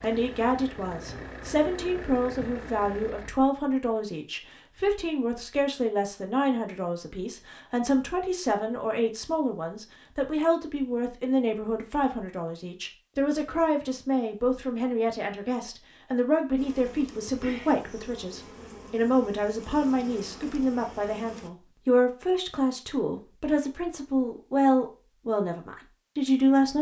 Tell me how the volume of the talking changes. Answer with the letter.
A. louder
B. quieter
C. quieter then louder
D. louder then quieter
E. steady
E.